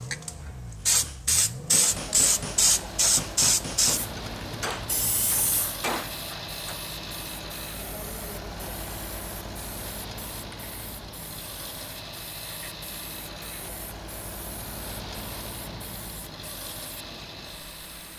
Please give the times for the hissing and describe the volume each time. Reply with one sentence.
You can hear the hissing from 0.0 to 18.1 s, getting quieter.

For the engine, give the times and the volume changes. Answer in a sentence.
You can hear the engine from 0.0 to 18.1 s, at a steady volume.